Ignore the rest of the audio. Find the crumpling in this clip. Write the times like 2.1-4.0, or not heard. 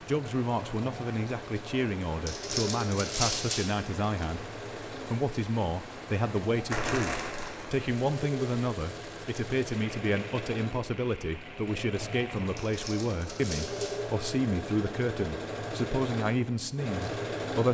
2.2-4.2, 6.7-7.7, 12.6-14.0.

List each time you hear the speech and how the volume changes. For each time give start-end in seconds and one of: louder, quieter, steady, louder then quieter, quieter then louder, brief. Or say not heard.
0.1-17.6 steady.